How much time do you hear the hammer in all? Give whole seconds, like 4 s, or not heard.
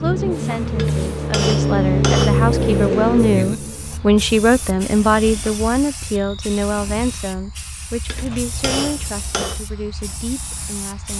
3 s.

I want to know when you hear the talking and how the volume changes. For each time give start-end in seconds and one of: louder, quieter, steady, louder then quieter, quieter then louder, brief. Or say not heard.
0.0-11.1 louder then quieter.